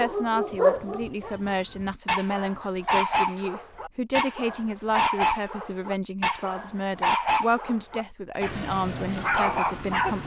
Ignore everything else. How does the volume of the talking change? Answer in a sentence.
The loudness of the talking stays about the same.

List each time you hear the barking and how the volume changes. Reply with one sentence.
The barking can be heard from 0.0 to 10.2 s, at a steady volume.